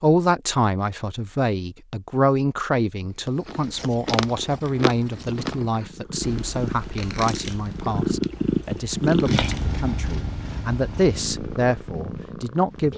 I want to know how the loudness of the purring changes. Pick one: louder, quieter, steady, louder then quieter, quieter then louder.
louder then quieter.